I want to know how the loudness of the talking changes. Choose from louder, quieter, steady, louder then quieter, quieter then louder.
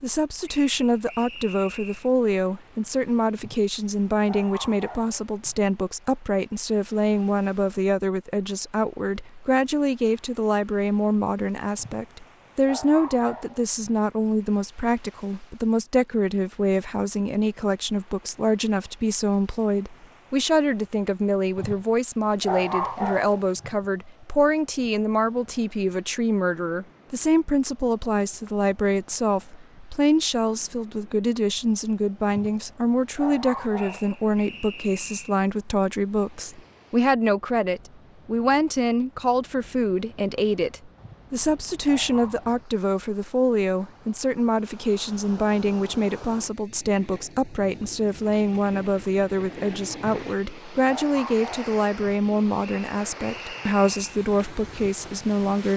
steady.